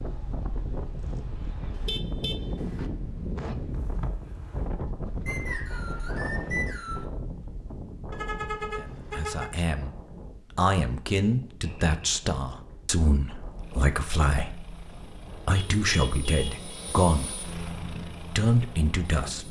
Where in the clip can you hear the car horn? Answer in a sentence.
The car horn can be heard from 1.7 to 2.9 s, from 8.1 to 9.5 s and from 15.6 to 16.6 s.